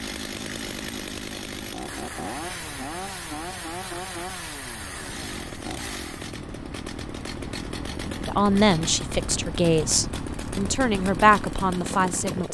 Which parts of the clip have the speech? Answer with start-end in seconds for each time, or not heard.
8.2-12.4.